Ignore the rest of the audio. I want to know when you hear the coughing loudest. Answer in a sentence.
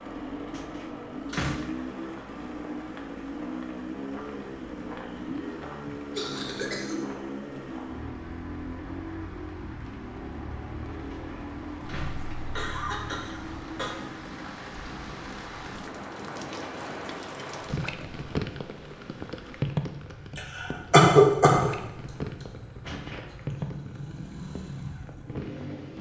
The volume of the coughing peaks at 21 seconds.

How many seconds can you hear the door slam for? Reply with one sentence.
You can hear the door slam for 3 seconds altogether.